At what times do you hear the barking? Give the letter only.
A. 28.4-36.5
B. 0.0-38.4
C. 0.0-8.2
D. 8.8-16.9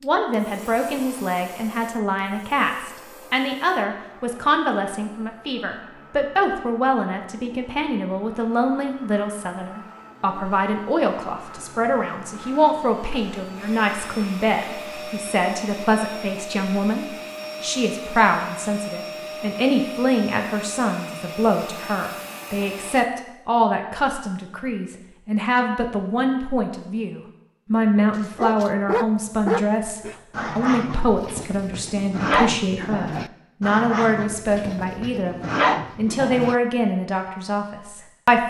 A.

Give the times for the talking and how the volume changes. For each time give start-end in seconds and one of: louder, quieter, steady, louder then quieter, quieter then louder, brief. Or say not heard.
0.0-38.4 steady.